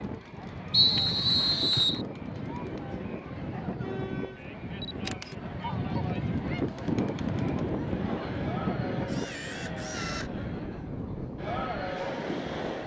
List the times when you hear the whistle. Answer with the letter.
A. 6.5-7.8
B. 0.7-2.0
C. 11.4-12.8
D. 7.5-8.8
B.